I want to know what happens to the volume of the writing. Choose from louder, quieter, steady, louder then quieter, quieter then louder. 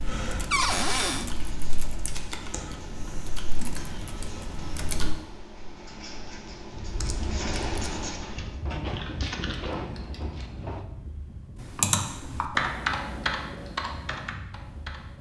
louder.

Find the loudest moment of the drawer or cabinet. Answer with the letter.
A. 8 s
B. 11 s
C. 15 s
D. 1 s
D.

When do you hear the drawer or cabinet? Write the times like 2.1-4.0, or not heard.
0.5-1.3, 8.7-10.8.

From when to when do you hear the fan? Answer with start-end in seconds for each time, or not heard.
6.6-15.1.